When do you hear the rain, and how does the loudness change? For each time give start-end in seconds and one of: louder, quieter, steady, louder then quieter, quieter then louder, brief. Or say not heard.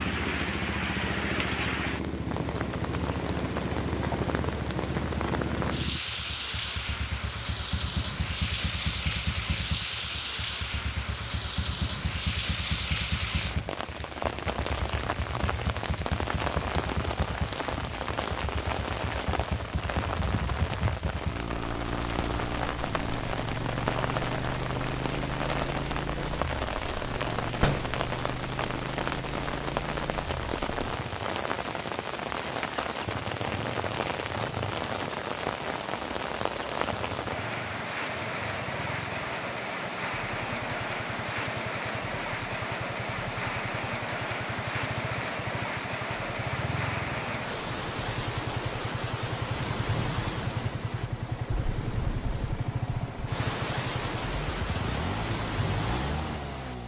0.0-56.8 steady.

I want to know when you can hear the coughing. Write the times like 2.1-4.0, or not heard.
not heard.